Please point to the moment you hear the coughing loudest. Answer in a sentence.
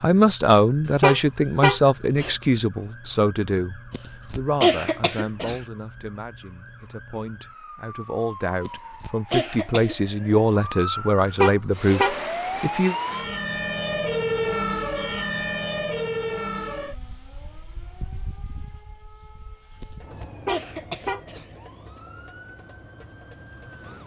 The volume of the coughing peaks at 5 seconds.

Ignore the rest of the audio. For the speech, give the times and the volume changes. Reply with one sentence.
The speech can be heard from 0.0 to 12.9 s, getting quieter then louder.